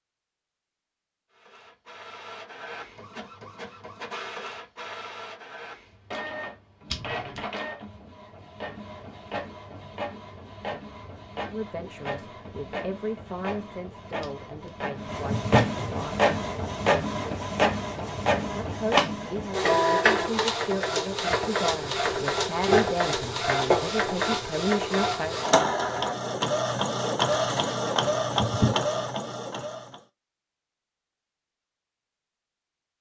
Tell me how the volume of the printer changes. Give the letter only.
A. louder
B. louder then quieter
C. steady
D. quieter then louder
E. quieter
A.